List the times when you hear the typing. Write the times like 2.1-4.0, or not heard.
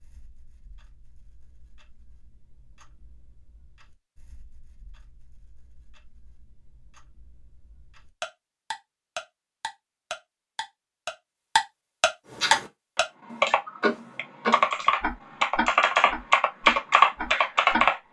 12.3-18.0.